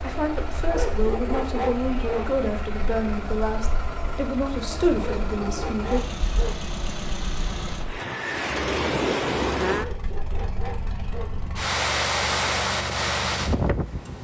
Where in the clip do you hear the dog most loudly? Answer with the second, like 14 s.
2 s.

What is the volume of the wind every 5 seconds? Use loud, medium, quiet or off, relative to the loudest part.
quiet, loud, loud.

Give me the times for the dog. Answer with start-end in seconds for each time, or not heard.
0.7-2.4, 5.0-6.7, 9.7-11.4.